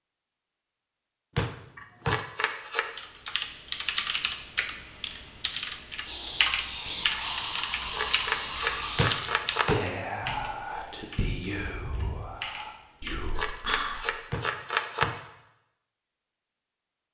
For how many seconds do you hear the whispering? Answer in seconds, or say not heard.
8 s.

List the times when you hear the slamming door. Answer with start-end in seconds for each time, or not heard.
1.4-2.2, 8.9-9.8, 14.3-15.2.